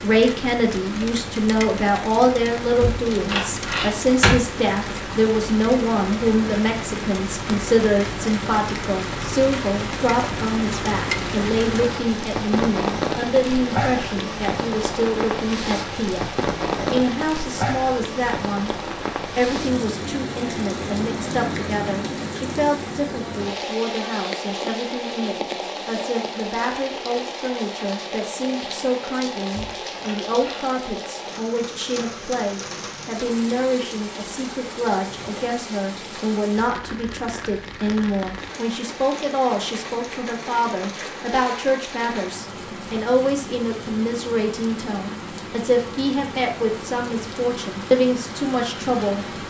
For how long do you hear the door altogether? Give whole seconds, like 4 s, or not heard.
3 s.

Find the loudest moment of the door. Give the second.
4 s.